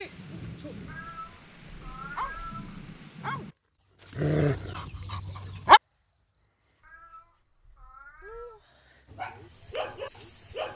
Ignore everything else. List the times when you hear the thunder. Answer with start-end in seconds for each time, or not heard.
0.0-3.5.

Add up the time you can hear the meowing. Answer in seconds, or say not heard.
4 s.